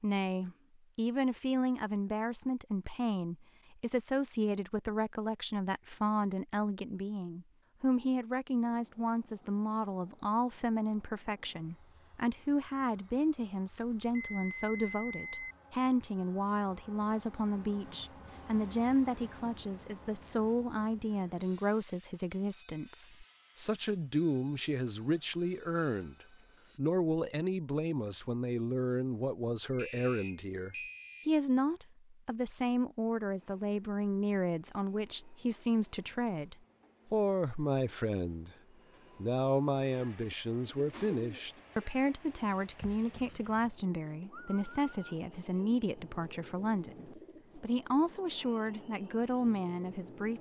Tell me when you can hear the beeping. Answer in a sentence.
The beeping can be heard from 13.9 to 15.6 s and from 29.7 to 31.3 s.